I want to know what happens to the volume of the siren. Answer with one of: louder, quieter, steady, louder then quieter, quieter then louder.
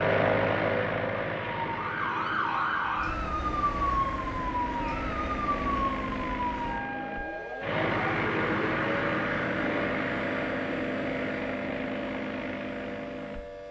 quieter.